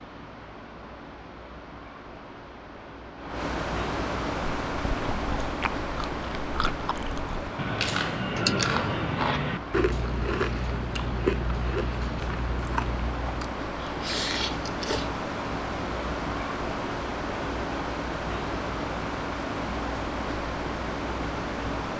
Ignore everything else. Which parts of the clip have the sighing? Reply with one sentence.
You can hear the sighing from 8.3 to 9.2 s.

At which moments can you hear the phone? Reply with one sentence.
You can't hear the phone here.